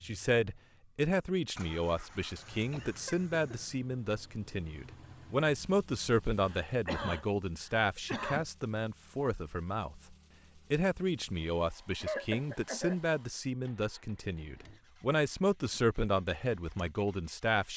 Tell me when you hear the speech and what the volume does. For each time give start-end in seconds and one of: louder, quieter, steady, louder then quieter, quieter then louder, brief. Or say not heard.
0.0-17.7 steady.